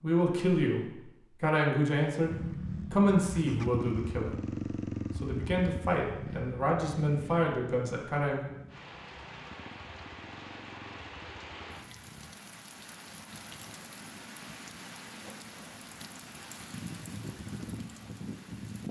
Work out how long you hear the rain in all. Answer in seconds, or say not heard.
10 s.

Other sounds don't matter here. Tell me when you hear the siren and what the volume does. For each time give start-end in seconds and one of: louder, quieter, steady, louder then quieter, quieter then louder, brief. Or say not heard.
not heard.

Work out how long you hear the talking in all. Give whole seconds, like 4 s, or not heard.
8 s.